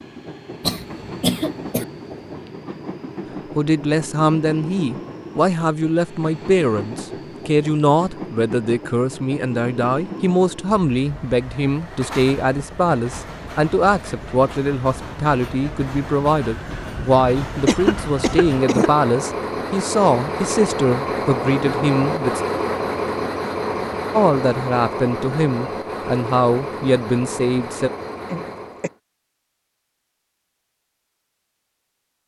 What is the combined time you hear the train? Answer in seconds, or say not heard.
29 s.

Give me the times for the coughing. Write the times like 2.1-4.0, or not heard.
0.6-1.9, 17.6-18.9, 28.2-28.9.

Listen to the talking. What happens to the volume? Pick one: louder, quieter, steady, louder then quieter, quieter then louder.
steady.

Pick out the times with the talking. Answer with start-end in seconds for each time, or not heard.
3.5-22.4, 24.1-27.9.